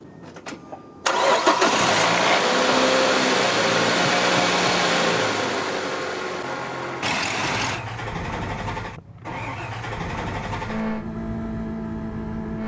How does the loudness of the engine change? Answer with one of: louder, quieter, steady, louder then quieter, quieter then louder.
quieter.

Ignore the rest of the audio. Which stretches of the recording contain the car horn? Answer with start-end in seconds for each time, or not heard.
7.0-7.8.